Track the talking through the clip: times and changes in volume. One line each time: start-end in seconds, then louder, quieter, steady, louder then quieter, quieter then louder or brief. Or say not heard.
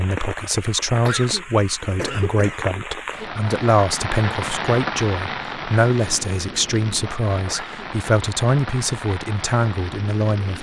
0.0-10.5 steady.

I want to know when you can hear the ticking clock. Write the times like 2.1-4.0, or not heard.
not heard.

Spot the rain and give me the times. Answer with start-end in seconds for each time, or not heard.
0.0-10.5.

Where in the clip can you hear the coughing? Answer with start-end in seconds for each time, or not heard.
0.9-2.6, 7.3-7.8.